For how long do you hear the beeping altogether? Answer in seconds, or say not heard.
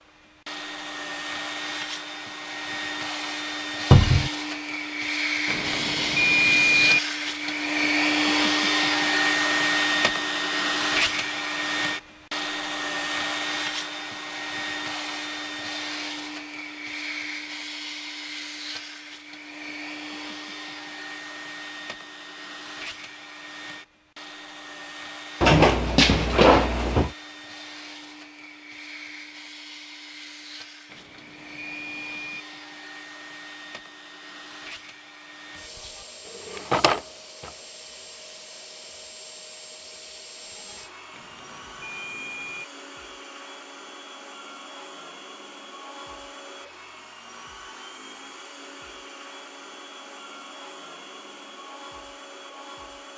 5 s.